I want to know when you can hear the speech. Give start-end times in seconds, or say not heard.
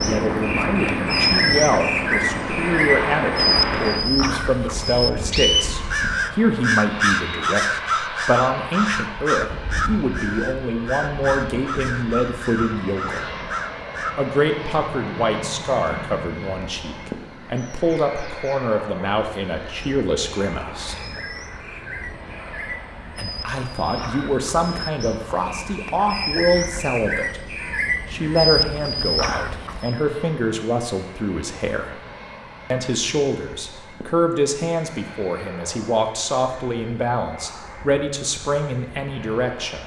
0.0-13.2, 14.2-21.0, 23.1-27.4, 28.1-32.0, 32.7-39.8.